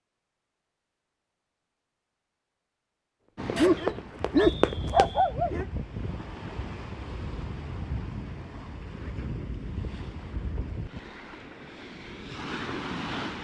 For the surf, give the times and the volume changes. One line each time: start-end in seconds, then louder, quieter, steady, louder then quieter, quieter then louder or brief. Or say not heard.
3.4-13.3 steady.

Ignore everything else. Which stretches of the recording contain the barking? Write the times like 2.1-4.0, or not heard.
3.5-5.7.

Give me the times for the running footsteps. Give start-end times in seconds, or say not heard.
3.5-5.1.